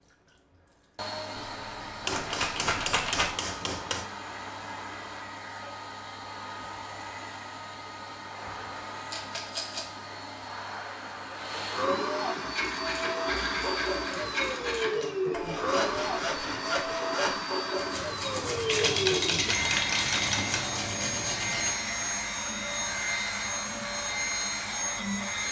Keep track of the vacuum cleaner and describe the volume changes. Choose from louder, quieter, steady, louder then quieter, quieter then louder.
louder.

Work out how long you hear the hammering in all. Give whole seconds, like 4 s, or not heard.
4 s.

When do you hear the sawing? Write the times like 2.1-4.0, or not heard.
12.4-21.8.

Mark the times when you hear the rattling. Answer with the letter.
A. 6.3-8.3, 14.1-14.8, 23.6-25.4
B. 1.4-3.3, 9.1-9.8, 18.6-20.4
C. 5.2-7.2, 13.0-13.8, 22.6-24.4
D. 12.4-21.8
B.